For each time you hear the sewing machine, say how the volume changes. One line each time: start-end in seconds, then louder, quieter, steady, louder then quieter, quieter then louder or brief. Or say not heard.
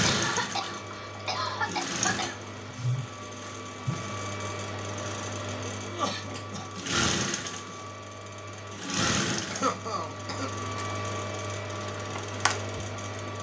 0.0-13.3 steady.